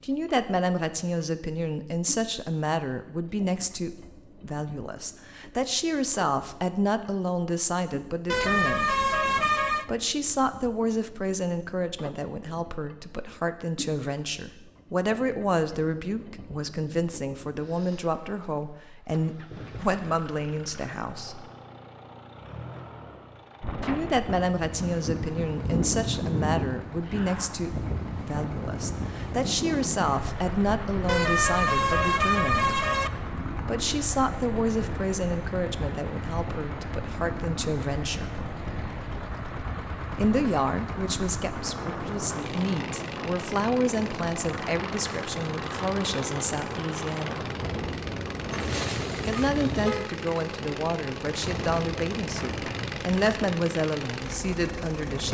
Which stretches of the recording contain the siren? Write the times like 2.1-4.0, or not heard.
not heard.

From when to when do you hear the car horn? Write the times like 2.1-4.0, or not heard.
8.2-9.8, 31.1-33.1, 48.5-50.1.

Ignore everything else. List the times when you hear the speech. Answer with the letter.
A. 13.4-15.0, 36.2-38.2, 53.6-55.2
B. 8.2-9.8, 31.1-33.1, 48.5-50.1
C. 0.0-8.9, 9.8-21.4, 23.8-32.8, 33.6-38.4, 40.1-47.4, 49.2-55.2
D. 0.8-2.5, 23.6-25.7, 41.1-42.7
C.